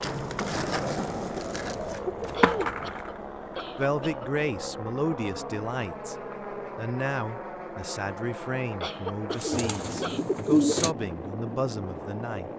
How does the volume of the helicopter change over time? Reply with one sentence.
The loudness of the helicopter stays about the same.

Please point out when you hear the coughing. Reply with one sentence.
You can hear the coughing from 2.3 to 4.3 s and from 8.8 to 10.2 s.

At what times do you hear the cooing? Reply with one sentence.
You can hear the cooing from 1.6 to 2.9 s and from 9.3 to 10.9 s.